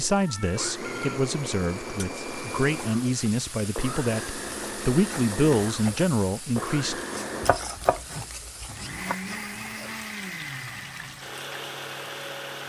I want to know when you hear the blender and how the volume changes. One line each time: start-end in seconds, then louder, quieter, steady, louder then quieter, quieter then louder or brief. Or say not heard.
0.0-12.6 steady.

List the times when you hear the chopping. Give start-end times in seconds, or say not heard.
7.4-9.2.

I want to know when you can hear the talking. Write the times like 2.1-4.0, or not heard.
0.0-7.0.